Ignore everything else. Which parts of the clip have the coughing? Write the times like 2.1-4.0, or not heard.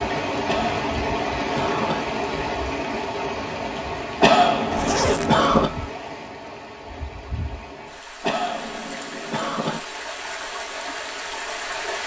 0.5-2.0, 4.2-5.7, 8.2-9.8.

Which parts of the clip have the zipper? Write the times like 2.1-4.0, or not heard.
4.7-5.8.